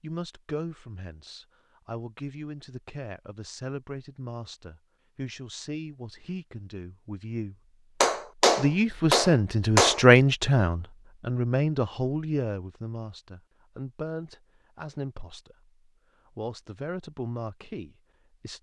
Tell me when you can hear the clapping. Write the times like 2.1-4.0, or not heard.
8.0-10.1.